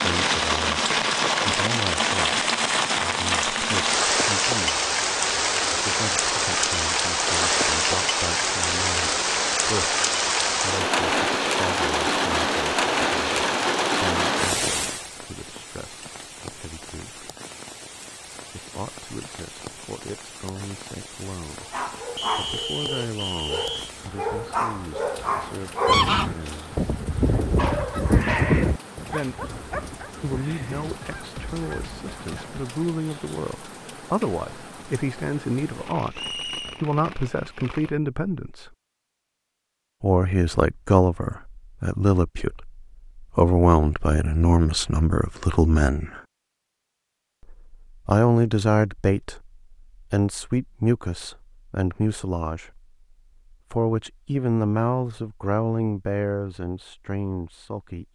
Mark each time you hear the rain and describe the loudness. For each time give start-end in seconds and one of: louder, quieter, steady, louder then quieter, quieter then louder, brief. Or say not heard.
0.0-38.0 quieter.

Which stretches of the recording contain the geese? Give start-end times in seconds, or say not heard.
25.9-32.7.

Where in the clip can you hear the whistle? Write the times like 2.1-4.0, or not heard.
22.1-23.9, 36.1-36.8.